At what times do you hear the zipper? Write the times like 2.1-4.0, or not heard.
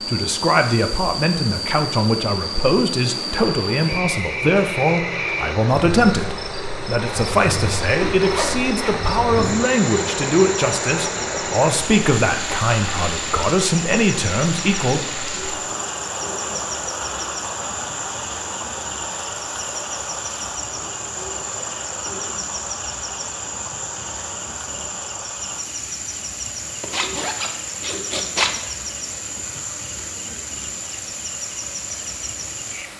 8.0-9.7, 26.8-28.6.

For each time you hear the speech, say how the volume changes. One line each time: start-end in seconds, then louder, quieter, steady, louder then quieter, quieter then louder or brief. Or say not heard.
0.1-15.0 steady.